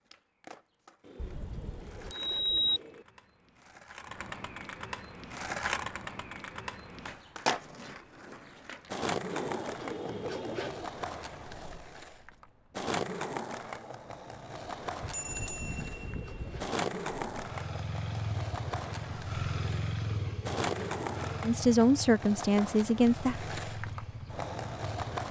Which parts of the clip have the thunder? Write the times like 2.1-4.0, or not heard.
not heard.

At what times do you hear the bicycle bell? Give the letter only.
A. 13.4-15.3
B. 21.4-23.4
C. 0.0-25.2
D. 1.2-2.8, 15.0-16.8
D.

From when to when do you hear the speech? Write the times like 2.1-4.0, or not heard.
21.4-23.4.